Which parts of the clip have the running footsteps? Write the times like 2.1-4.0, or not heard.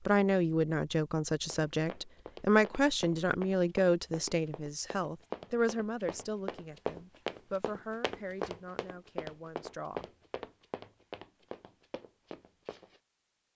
1.4-13.0.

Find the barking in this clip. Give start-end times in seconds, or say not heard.
not heard.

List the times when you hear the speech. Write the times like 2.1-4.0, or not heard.
0.1-10.1.